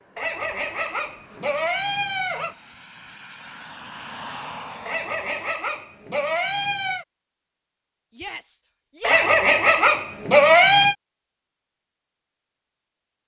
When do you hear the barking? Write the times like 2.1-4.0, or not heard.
0.1-2.5, 4.8-7.0, 9.0-10.9.